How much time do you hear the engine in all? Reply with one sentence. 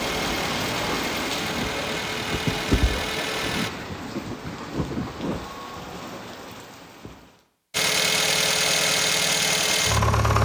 You can hear the engine for 6 seconds altogether.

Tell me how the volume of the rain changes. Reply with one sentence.
The volume of the rain goes down.